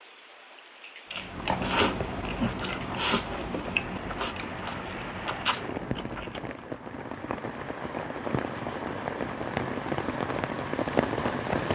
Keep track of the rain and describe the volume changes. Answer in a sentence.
The volume of the rain goes up.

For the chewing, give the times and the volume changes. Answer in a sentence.
The chewing can be heard from 1.1 to 6.8 s, getting quieter.